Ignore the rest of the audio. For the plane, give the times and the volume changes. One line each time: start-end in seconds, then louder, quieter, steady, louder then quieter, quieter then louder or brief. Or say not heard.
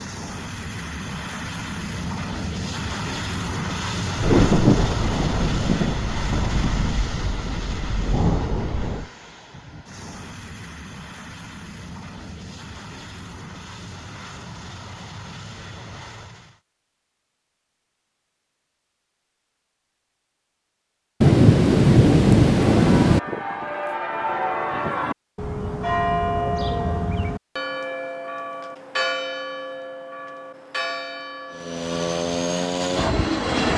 0.0-16.6 quieter
31.5-33.7 brief.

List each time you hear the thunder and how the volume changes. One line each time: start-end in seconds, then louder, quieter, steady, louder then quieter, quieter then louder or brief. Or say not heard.
4.2-9.1 quieter then louder
21.2-23.2 brief.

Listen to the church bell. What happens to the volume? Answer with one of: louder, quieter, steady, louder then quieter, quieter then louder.
quieter.